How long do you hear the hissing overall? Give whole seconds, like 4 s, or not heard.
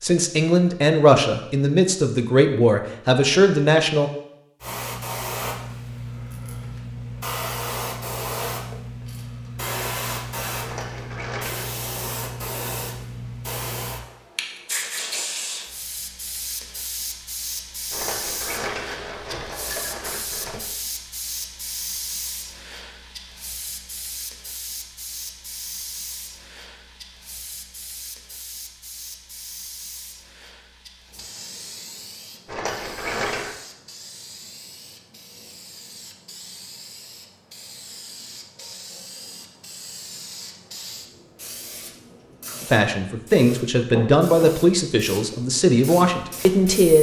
42 s.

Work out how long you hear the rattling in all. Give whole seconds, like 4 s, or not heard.
5 s.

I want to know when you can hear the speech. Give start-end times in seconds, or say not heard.
0.0-4.1, 42.7-46.9.